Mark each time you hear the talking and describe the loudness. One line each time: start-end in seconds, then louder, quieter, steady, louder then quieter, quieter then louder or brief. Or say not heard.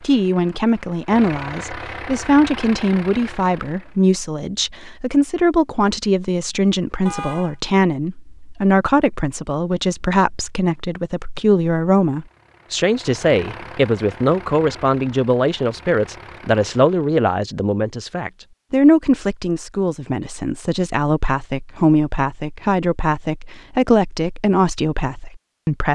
0.0-25.8 steady.